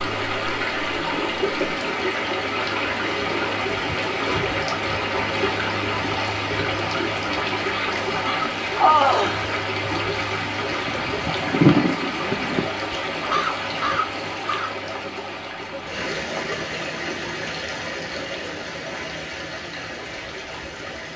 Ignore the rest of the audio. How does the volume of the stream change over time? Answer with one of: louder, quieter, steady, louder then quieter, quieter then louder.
quieter.